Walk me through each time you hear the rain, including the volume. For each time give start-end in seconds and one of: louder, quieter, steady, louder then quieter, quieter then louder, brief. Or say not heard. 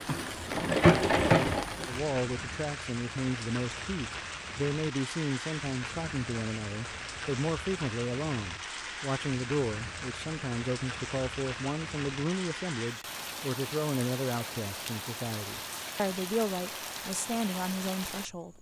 0.0-18.5 steady.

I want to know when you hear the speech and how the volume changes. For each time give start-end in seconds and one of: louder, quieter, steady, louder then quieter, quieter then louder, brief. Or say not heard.
1.9-18.5 steady.